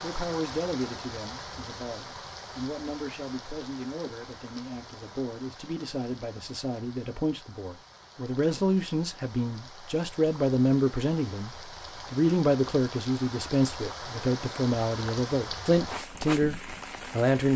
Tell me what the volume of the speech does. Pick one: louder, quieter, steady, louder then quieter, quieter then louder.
louder.